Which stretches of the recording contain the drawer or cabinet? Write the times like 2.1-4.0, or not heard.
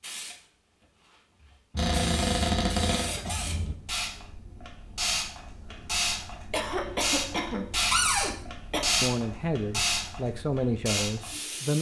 1.8-3.1, 7.9-8.3.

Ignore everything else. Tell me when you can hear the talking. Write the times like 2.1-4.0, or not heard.
9.0-11.7.